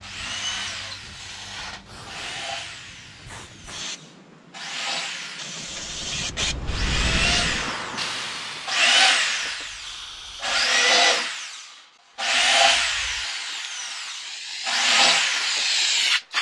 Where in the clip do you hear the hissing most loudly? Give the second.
16 s.